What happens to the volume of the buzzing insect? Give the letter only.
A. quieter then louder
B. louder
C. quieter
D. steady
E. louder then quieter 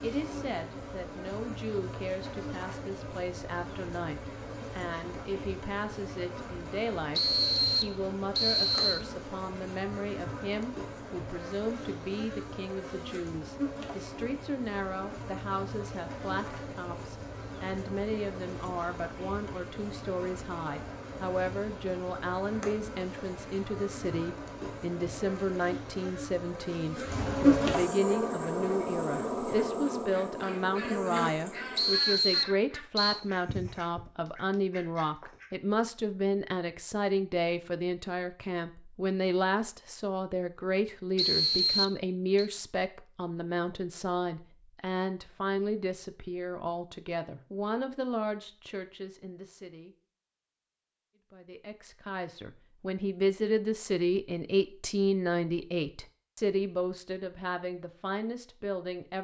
B.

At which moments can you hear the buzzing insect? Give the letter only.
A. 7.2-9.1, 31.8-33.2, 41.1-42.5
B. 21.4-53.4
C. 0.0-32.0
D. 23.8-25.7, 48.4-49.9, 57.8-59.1
C.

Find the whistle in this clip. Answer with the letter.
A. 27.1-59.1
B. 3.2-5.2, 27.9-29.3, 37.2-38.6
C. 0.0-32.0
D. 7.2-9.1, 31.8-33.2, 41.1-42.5
D.